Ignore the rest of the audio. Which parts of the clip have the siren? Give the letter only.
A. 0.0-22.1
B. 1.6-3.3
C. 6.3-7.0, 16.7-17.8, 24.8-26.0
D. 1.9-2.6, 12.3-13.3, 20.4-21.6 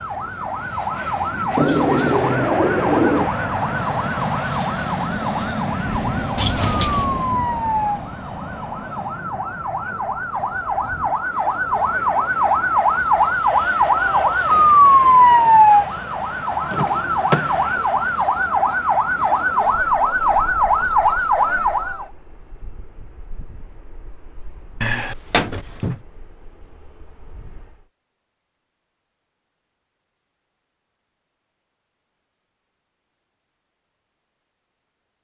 A.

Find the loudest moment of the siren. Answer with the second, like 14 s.
15 s.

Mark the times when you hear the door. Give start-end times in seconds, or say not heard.
6.3-7.0, 16.7-17.8, 24.8-26.0.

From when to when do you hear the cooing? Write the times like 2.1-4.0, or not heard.
1.6-3.3.